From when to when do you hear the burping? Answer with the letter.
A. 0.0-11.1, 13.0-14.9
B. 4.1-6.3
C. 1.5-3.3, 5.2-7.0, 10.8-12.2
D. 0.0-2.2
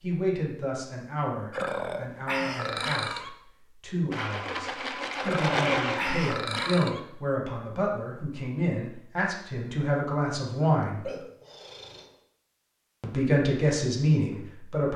C.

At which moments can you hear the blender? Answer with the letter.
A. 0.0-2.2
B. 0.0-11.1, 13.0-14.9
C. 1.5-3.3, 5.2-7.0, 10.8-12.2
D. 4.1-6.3
D.